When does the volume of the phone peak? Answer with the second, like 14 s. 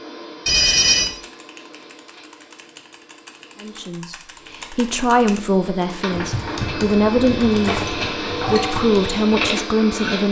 1 s.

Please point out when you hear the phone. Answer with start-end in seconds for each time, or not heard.
0.5-1.1, 7.8-8.8.